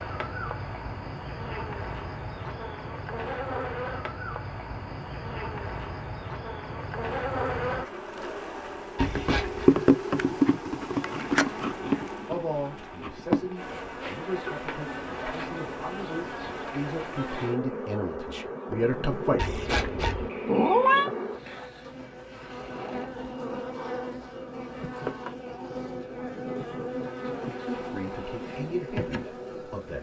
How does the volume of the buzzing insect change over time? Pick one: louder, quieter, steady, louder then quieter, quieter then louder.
louder then quieter.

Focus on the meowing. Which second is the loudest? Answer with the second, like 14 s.
21 s.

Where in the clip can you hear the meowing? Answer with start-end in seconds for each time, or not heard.
8.9-9.7, 19.4-21.1.